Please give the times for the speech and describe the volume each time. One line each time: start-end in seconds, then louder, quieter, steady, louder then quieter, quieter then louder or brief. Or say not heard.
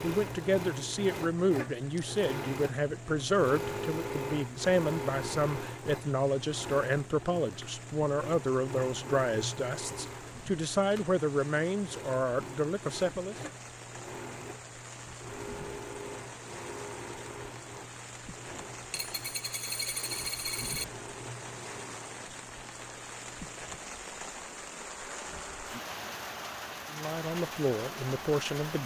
0.0-13.3 steady
26.9-28.8 brief.